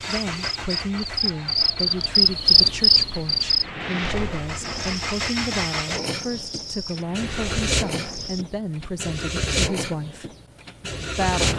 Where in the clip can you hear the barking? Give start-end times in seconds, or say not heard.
not heard.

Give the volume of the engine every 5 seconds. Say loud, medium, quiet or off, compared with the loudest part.
medium, loud, loud.